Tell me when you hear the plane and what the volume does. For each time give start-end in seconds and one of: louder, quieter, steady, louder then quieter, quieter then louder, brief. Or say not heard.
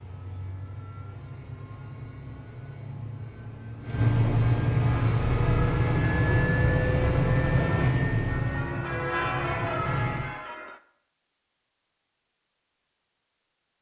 0.0-10.3 louder then quieter.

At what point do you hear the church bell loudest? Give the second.
9 s.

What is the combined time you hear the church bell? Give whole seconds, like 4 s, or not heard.
6 s.